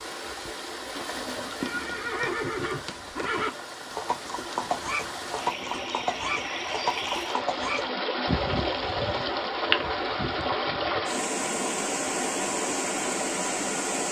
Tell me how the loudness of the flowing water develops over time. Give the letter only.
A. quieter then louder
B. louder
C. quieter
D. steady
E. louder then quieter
B.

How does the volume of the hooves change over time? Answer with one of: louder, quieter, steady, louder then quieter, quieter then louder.
quieter.